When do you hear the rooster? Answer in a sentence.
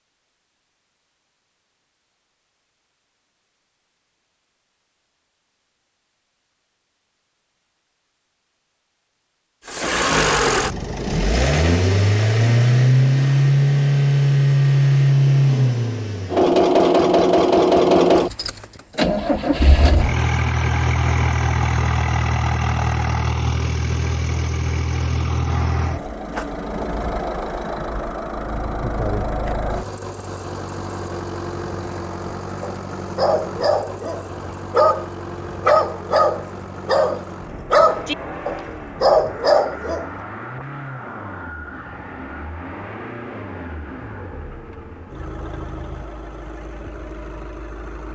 The rooster can't be heard in this clip.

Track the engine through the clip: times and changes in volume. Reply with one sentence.
You can hear the engine from 9.7 to 48.1 s, getting quieter.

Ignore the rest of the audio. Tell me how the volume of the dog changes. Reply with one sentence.
The volume of the dog goes up.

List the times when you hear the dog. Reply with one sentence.
The dog can be heard from 32.6 to 40.1 s.